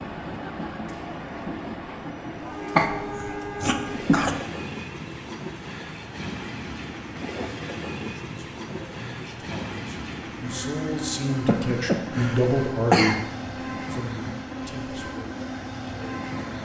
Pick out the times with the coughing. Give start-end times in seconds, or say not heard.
2.8-4.3, 11.4-13.2.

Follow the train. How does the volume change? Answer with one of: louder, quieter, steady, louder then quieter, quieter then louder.
steady.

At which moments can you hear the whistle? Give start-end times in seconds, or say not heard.
not heard.